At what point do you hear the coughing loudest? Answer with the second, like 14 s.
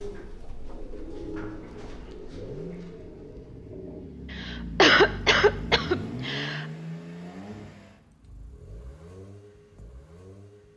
5 s.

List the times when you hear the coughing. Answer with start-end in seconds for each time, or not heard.
4.3-6.7.